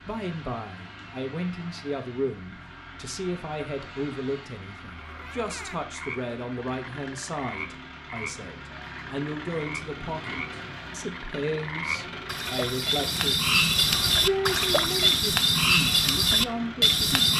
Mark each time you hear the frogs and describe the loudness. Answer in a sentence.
You can hear the frogs from 5.0 to 17.3 s, getting louder.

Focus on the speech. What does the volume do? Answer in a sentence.
The loudness of the speech stays about the same.